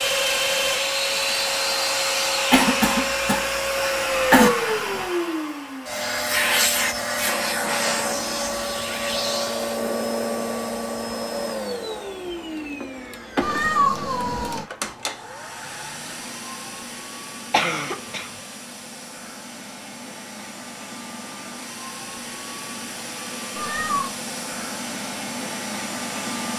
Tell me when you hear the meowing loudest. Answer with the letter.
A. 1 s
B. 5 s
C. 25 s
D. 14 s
D.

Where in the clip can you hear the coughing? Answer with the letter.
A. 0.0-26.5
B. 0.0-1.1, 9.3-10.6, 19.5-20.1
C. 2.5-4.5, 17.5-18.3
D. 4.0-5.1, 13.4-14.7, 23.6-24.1
C.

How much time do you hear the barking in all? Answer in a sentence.
You can't hear the barking here.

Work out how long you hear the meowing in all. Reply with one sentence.
You can hear the meowing for 3 seconds altogether.